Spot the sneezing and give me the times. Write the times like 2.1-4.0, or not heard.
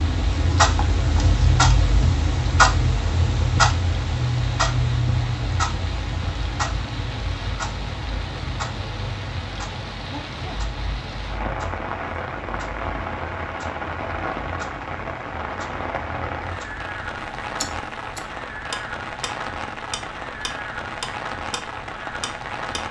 10.1-10.6.